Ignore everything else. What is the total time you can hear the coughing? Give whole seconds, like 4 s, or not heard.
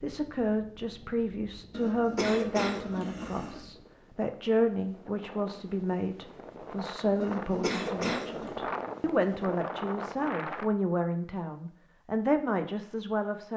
3 s.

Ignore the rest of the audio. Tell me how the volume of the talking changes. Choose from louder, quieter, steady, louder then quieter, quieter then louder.
steady.